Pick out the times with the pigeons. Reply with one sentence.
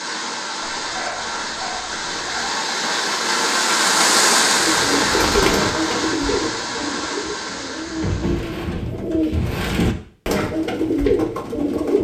The pigeons can be heard from 4.5 to 11.9 s.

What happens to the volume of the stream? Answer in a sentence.
The volume of the stream goes up, then down.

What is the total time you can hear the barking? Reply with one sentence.
The barking can be heard for 2 seconds in total.